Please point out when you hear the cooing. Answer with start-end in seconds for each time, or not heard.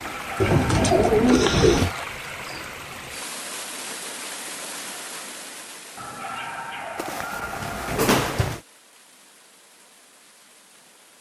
0.4-1.9, 7.0-8.6.